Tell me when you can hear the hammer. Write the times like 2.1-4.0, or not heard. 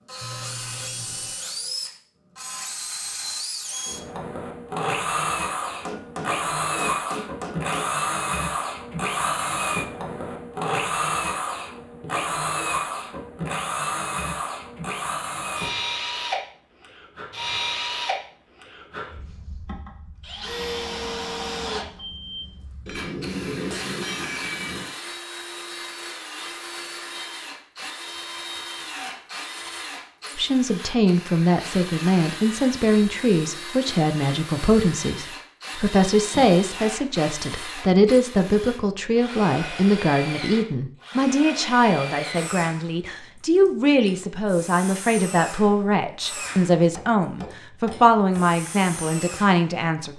5.8-7.8, 22.9-24.9, 46.8-48.5.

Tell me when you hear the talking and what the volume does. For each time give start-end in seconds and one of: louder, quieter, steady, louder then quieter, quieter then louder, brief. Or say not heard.
30.4-50.1 steady.